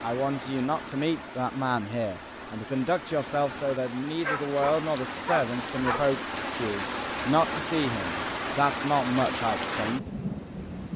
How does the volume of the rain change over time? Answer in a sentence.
The volume of the rain goes up.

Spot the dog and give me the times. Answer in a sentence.
You can hear the dog from 4.2 to 6.0 s.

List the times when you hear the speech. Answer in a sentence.
The speech can be heard from 0.0 to 10.1 s.